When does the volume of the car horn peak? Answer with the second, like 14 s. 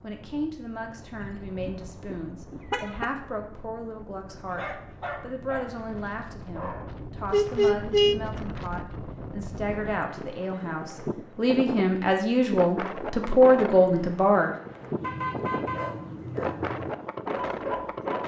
8 s.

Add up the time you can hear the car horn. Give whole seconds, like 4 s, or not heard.
4 s.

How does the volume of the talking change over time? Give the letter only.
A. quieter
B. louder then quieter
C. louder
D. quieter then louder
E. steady
C.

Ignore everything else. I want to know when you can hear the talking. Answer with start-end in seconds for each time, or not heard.
0.0-14.6.